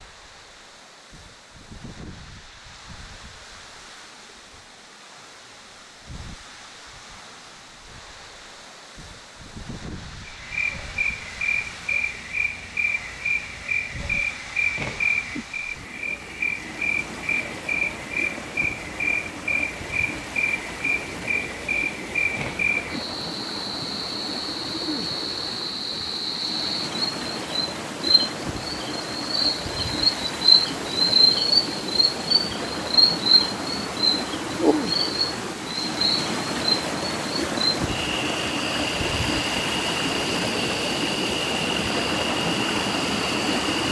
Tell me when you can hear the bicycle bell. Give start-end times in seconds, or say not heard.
not heard.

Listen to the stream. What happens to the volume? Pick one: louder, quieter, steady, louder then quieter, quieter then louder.
louder.